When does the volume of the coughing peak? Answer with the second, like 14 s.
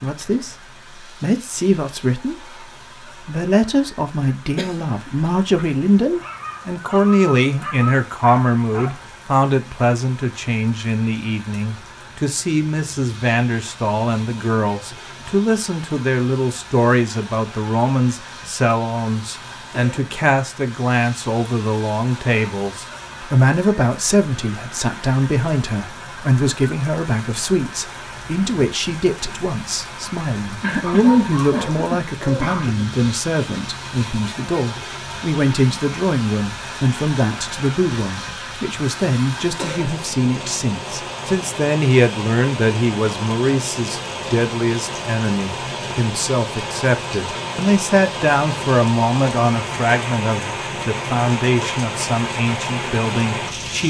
31 s.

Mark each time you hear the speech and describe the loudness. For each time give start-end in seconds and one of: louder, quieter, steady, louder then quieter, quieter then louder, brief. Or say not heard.
0.0-53.8 steady.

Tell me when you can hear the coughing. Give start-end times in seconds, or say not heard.
4.5-5.3, 30.6-32.6.